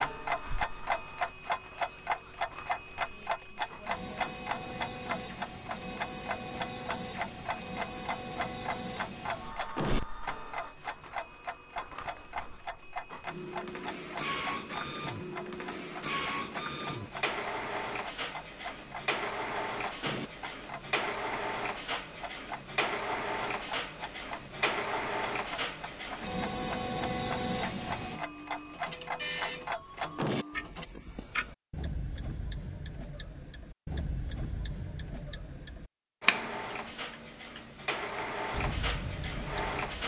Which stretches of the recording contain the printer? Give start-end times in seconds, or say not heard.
0.0-30.9, 36.2-40.0.